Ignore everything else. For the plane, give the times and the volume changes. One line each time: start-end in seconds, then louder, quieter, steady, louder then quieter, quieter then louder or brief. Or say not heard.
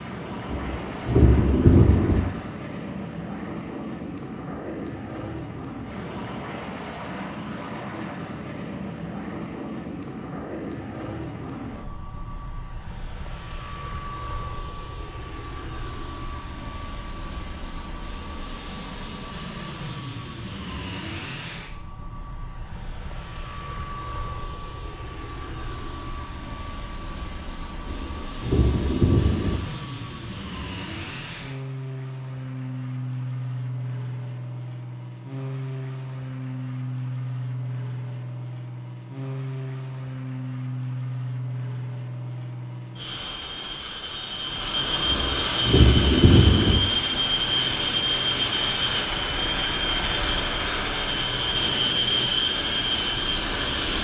0.0-53.9 louder.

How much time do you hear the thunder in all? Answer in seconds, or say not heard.
5 s.